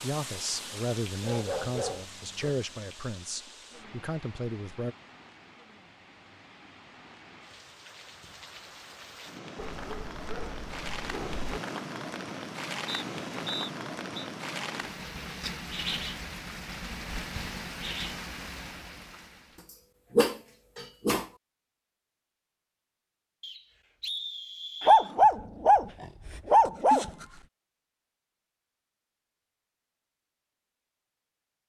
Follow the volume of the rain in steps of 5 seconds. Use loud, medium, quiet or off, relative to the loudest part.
medium, medium, loud, loud, off, off, off.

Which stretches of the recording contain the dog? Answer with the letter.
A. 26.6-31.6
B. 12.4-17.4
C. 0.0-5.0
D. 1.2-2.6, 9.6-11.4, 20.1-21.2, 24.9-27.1
D.